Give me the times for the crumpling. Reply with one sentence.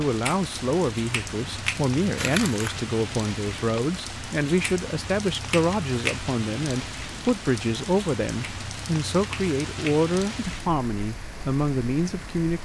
The crumpling can be heard from 2.1 to 2.8 s.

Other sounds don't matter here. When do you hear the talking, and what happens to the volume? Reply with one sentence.
You can hear the talking from 0.0 to 12.6 s, at a steady volume.